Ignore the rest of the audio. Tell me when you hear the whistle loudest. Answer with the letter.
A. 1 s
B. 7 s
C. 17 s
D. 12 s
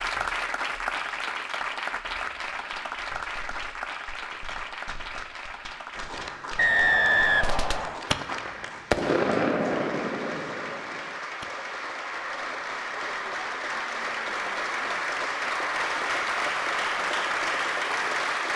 B.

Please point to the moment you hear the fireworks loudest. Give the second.
9 s.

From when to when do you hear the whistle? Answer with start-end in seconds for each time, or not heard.
6.5-8.1.